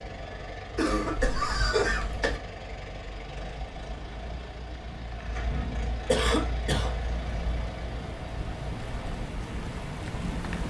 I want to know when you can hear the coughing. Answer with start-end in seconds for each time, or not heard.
0.8-2.4, 6.0-7.0.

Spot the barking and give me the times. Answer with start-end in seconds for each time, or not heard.
not heard.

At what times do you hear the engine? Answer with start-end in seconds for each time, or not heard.
0.0-10.4.